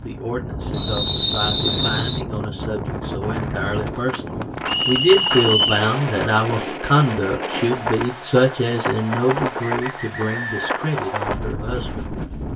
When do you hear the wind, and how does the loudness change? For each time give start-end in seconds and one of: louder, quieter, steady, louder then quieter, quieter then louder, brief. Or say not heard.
0.0-12.5 steady.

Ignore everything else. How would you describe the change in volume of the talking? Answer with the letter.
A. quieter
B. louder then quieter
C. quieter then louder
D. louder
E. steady
B.